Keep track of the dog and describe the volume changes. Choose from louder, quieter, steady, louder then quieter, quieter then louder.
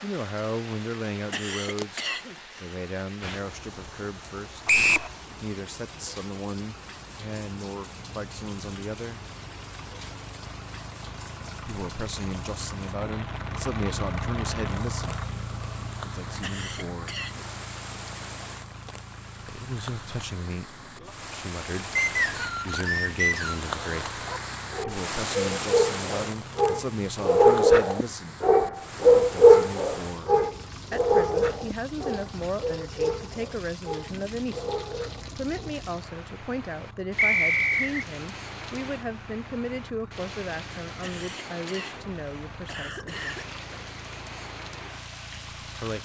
louder then quieter.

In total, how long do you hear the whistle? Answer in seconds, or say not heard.
3 s.